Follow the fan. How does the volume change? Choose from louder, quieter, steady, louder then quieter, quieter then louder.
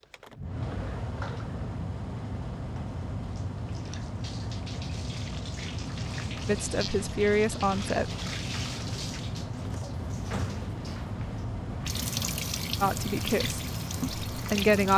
steady.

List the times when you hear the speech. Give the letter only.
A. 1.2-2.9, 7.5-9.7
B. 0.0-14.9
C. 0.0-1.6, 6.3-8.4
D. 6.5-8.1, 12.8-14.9
D.